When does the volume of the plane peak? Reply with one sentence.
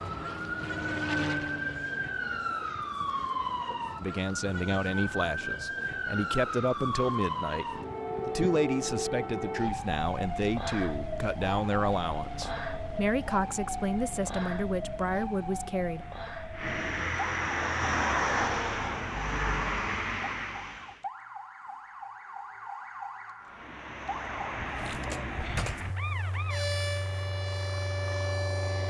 The volume of the plane peaks at 18 seconds.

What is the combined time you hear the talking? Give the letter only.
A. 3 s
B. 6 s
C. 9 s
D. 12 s
D.